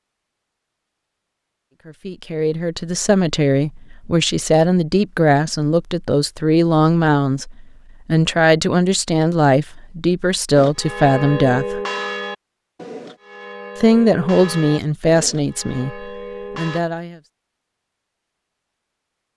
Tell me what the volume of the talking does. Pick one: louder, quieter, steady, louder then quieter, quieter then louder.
steady.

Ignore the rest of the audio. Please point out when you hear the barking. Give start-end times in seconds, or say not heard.
not heard.